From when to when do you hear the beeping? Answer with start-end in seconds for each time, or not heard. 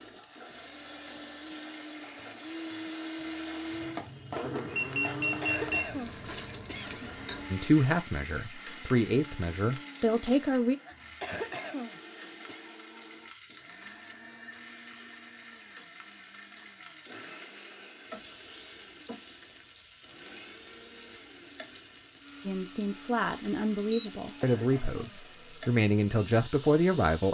4.8-5.8, 11.1-11.6, 23.9-24.6.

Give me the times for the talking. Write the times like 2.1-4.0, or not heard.
7.5-10.8, 22.4-27.2.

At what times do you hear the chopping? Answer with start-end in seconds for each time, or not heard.
not heard.